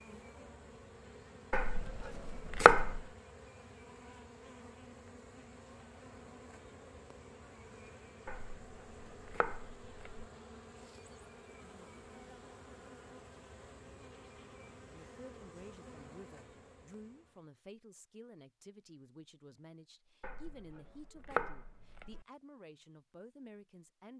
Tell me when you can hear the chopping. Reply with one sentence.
You can hear the chopping from 1.5 to 3.0 s, from 8.2 to 10.2 s and from 20.2 to 22.2 s.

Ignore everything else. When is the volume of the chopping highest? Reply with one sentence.
The volume of the chopping peaks at 3 seconds.